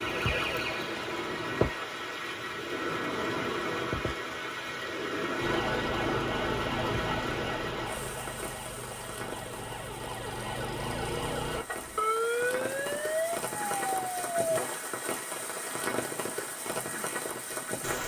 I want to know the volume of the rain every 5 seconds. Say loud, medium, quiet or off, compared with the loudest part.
loud, loud, medium, loud.